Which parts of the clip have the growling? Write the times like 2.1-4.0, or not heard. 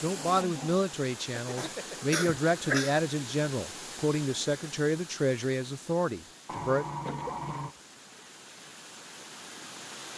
0.1-2.0, 6.5-7.8.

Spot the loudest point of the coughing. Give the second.
3 s.